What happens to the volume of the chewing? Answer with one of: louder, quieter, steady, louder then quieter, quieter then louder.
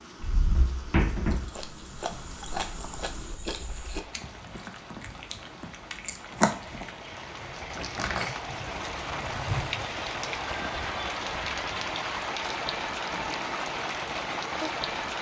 quieter then louder.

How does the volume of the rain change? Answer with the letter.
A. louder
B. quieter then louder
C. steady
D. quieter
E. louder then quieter
A.